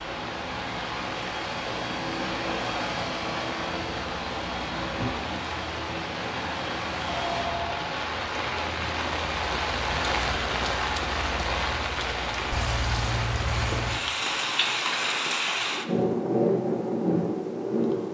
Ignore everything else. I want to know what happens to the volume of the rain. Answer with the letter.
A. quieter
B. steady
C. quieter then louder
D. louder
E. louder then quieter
D.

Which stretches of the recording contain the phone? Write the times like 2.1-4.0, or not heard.
7.0-7.9.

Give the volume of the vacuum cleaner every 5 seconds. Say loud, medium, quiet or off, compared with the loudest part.
loud, loud, off, off.